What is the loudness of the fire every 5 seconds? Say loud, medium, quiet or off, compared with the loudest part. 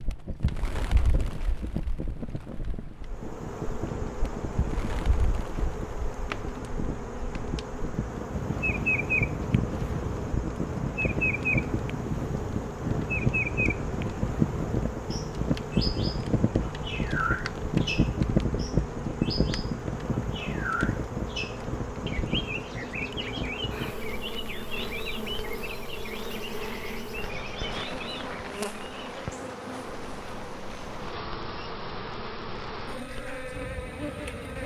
medium, medium, loud, loud, medium, quiet, quiet.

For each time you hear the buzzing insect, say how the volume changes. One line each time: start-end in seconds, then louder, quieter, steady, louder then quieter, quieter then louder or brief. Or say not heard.
3.0-34.6 steady.